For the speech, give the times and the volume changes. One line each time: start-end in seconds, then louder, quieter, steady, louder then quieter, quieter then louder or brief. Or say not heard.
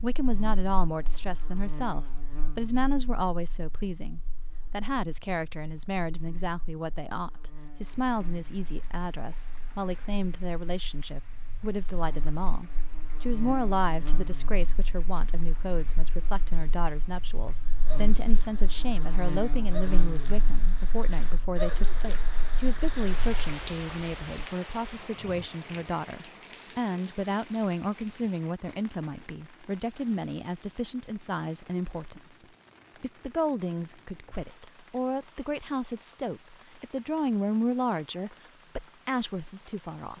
0.0-40.1 steady.